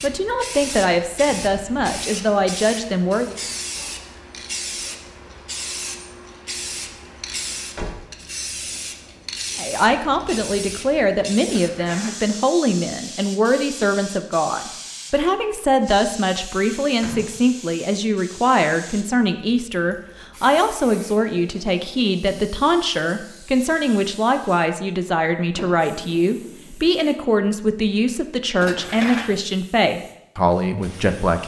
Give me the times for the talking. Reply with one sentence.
You can hear the talking from 0.0 to 3.4 s and from 9.6 to 31.4 s.